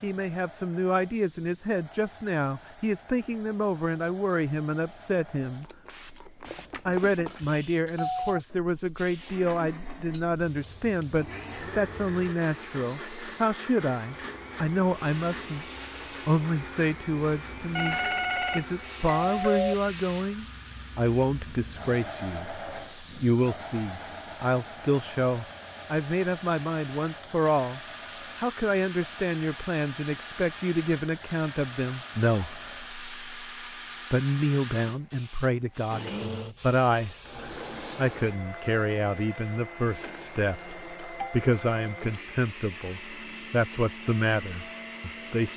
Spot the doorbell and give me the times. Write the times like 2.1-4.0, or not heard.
6.4-8.3, 17.8-19.8, 40.6-41.4.